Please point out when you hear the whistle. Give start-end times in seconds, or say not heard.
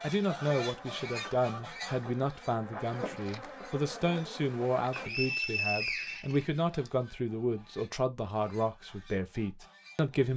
4.9-6.9.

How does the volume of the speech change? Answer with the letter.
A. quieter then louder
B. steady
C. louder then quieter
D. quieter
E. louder
B.